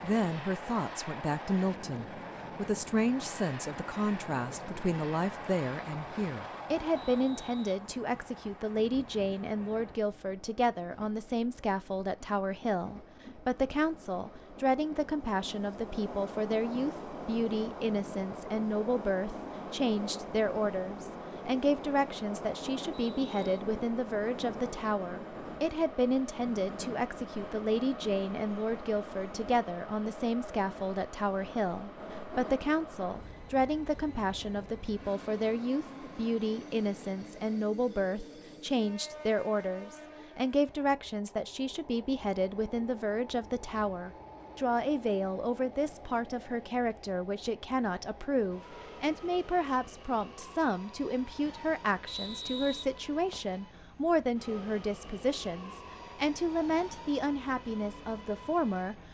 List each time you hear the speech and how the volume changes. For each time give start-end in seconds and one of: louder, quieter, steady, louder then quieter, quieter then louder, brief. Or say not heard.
0.0-59.0 steady.